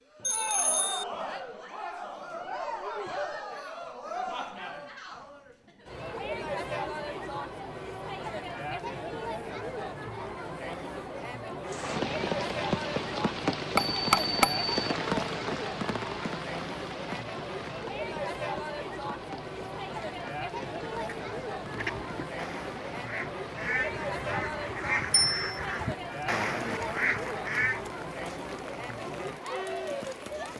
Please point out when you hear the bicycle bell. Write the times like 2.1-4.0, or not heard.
0.2-1.1, 13.8-14.7, 25.1-25.6.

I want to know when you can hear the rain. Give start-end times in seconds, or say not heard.
11.7-30.5.